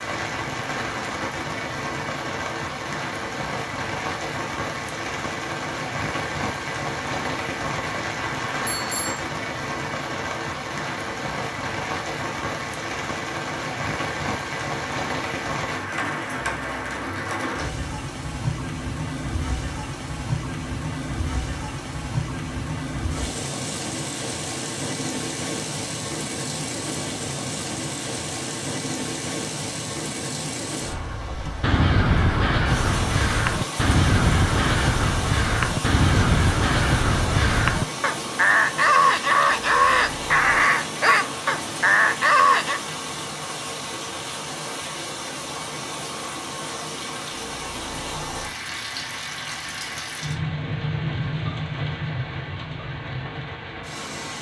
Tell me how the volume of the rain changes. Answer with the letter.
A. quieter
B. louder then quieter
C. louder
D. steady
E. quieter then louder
D.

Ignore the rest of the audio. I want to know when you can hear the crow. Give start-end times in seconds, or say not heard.
31.6-42.8.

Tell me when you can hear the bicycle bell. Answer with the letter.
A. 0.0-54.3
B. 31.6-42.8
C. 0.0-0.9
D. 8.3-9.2
D.